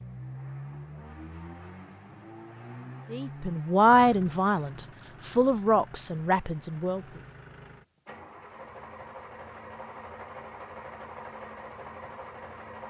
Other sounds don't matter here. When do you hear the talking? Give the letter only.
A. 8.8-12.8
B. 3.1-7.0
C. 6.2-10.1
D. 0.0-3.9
B.